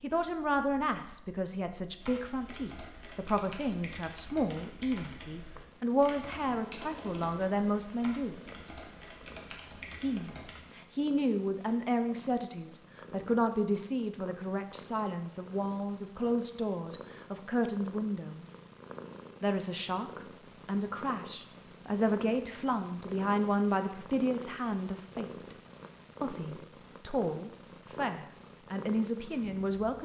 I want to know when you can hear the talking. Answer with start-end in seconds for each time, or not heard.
0.0-8.4, 10.0-18.4, 19.4-25.6, 26.2-29.9.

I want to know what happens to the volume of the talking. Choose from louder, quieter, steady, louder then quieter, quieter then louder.
steady.